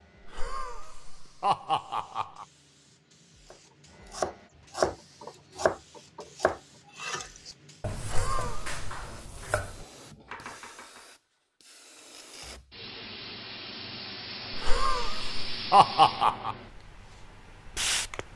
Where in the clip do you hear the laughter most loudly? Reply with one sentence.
The loudest moment of the laughter is at 16 seconds.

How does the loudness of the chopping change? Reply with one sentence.
The volume of the chopping goes down.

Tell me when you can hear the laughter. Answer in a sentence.
You can hear the laughter from 0.2 to 2.5 s, from 8.0 to 8.8 s and from 14.5 to 16.6 s.